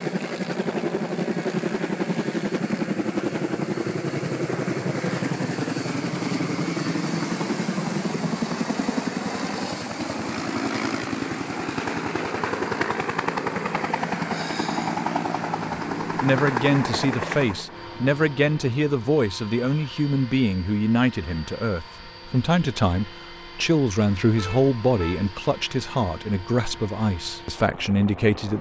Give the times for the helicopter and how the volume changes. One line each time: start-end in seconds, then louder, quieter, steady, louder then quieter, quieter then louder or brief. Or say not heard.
0.0-28.5 quieter.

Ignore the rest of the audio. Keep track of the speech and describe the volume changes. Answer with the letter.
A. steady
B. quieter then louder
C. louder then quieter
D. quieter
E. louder
A.